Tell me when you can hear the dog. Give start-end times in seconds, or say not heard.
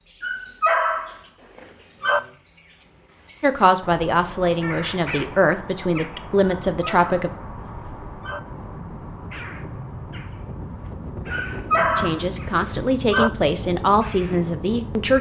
0.2-2.2, 6.7-8.4, 11.3-13.3.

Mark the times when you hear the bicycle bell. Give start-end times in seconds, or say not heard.
not heard.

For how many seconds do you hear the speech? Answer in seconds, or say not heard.
7 s.